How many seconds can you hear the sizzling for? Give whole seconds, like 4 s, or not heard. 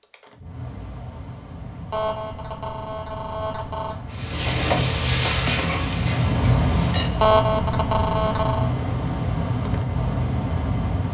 3 s.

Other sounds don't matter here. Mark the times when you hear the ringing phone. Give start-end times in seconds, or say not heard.
1.9-4.0, 7.2-8.7.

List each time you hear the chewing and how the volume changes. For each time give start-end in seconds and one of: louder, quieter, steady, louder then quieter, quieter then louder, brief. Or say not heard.
not heard.